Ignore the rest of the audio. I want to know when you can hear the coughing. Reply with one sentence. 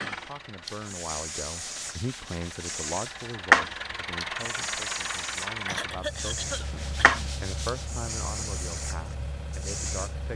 You can hear the coughing from 5.7 to 7.2 s.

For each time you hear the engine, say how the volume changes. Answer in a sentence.
You can hear the engine from 0.0 to 10.3 s, getting louder then quieter.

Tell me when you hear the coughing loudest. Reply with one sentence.
The volume of the coughing peaks at 6 seconds.